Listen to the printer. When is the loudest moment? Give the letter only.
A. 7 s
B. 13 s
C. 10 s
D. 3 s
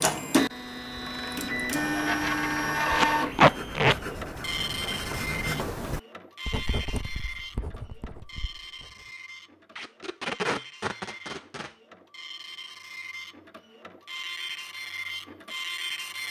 D.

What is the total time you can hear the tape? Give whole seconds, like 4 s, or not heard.
3 s.